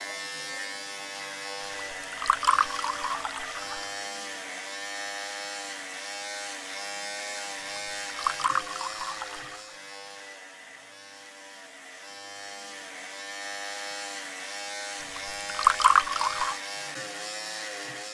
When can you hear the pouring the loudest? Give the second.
16 s.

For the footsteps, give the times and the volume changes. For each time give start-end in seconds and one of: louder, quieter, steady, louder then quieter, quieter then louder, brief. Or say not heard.
not heard.